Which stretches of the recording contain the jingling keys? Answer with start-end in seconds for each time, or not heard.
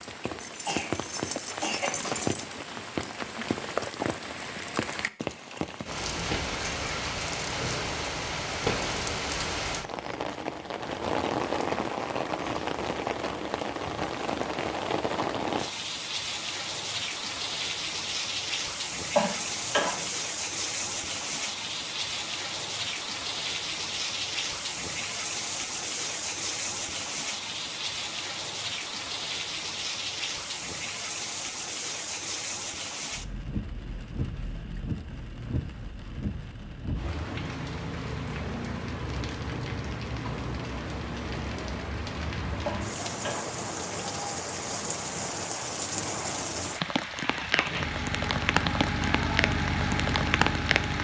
0.4-2.5.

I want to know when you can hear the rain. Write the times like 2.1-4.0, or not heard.
0.0-51.0.